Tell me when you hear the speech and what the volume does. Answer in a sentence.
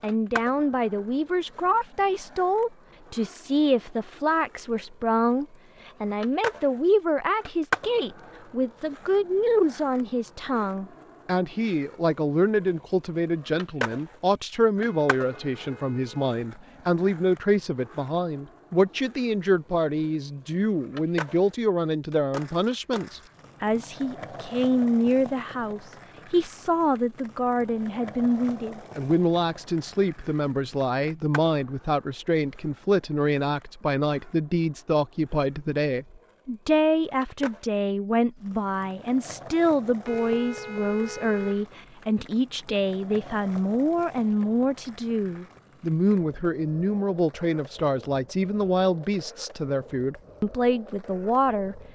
The speech can be heard from 0.0 to 51.8 s, at a steady volume.